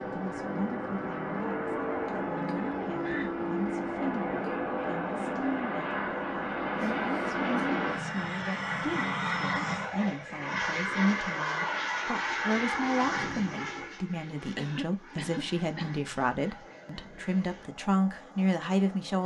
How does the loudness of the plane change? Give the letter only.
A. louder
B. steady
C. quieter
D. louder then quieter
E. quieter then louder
C.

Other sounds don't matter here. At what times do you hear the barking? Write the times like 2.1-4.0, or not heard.
not heard.